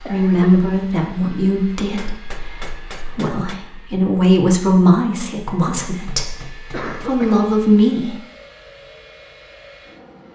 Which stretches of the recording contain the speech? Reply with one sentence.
You can hear the speech from 0.0 to 8.2 s.